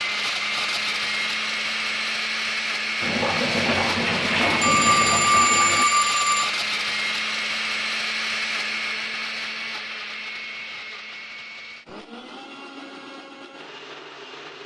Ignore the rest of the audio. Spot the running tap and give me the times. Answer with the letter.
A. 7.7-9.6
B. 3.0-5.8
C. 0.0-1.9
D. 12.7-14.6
B.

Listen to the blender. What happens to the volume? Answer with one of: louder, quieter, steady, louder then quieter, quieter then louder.
quieter.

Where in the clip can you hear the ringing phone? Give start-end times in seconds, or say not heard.
4.6-6.5.